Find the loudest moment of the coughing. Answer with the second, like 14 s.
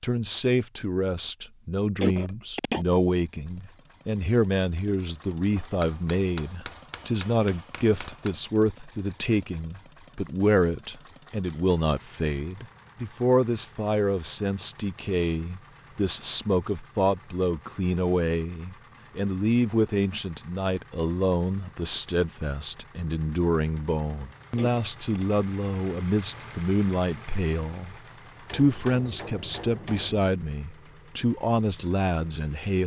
2 s.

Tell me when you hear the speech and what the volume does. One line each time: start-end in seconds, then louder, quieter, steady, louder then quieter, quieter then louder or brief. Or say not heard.
0.0-32.8 steady.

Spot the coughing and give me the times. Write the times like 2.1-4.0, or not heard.
2.0-3.0, 24.6-25.2.